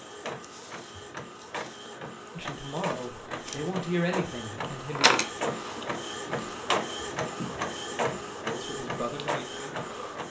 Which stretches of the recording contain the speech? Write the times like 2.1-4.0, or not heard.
2.4-5.1, 8.4-10.2.